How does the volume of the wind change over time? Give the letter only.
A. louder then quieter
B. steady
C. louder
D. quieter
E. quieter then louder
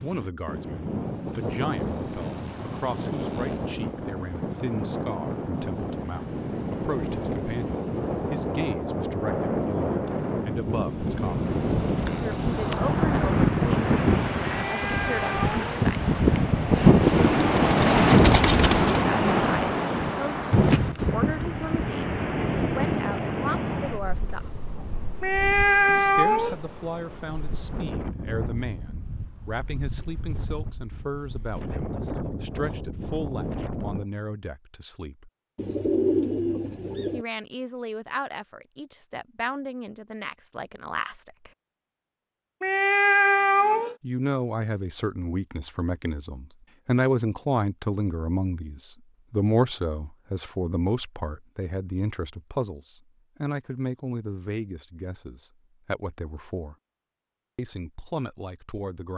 A.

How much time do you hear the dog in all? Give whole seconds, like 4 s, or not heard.
not heard.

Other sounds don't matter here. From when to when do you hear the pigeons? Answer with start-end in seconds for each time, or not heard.
17.2-19.1, 35.5-37.2.